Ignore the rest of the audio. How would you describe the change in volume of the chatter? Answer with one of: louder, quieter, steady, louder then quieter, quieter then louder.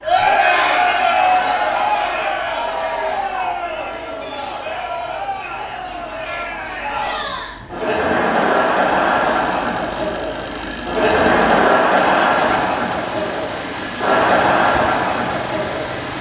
quieter then louder.